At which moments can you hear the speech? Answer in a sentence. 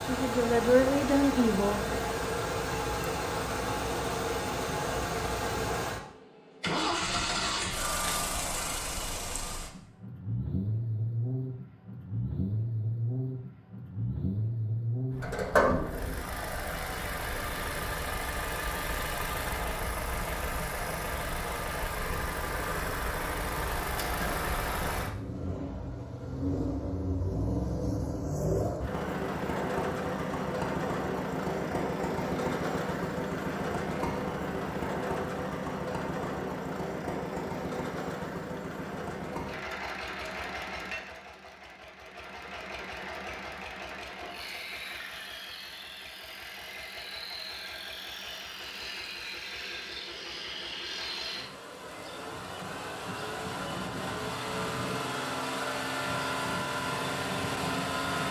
The speech can be heard from 0.0 to 1.9 s.